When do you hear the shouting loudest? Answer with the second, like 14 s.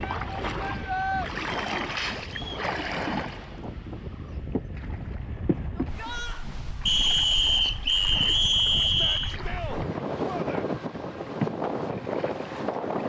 1 s.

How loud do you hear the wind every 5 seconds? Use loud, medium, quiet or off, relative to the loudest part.
medium, medium, loud.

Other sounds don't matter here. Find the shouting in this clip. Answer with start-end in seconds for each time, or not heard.
0.0-1.3, 5.8-6.5, 8.8-10.7.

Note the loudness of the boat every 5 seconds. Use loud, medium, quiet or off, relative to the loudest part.
loud, medium, loud.